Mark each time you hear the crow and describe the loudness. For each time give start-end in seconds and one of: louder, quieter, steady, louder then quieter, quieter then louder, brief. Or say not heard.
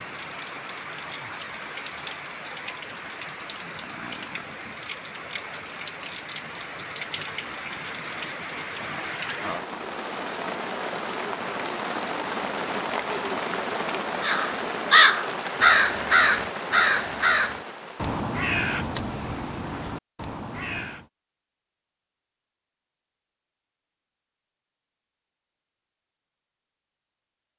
14.2-21.1 quieter.